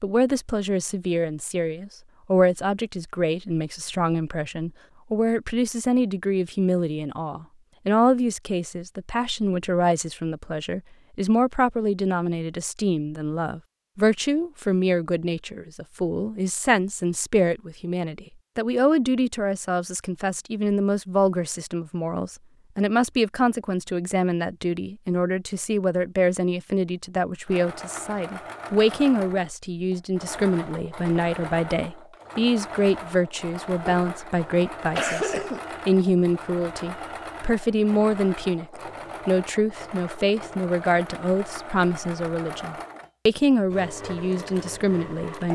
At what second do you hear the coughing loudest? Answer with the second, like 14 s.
35 s.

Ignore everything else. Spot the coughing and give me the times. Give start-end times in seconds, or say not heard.
33.9-35.6.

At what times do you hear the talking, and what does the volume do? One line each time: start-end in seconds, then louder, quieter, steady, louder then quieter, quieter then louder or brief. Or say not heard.
0.0-45.4 steady.